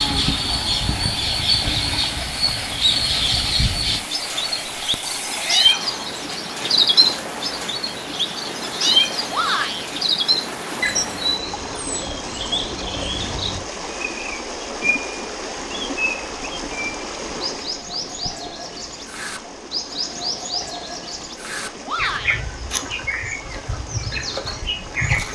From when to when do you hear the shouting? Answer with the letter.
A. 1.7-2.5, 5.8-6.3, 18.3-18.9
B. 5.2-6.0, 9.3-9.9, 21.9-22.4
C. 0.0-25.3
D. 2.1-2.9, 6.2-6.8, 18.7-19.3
B.